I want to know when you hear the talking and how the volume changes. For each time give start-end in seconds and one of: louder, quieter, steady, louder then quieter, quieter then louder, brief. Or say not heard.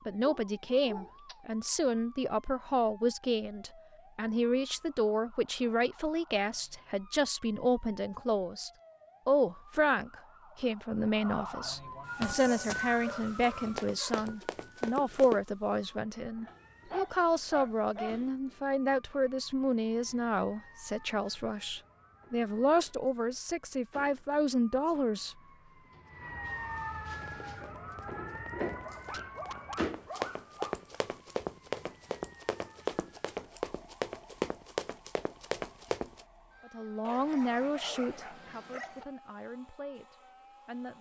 0.1-25.4 steady
36.6-40.9 quieter.